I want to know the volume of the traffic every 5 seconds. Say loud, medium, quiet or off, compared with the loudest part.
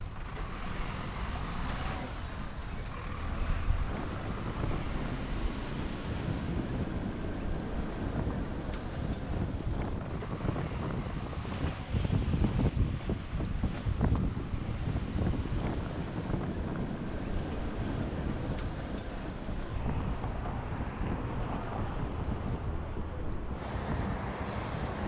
loud, loud, medium, loud, loud.